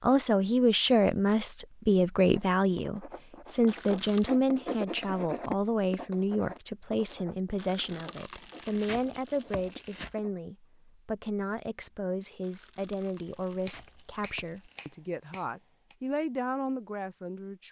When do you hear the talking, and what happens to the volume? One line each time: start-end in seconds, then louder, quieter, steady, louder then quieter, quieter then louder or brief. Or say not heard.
0.0-17.6 quieter.